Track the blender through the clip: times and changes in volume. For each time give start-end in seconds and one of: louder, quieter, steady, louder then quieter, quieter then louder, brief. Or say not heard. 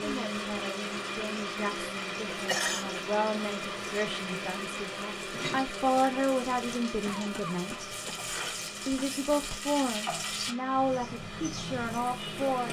0.0-12.6 quieter.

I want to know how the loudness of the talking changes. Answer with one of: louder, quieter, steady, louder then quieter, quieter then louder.
louder.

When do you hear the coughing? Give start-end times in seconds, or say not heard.
2.2-2.9, 7.0-9.1.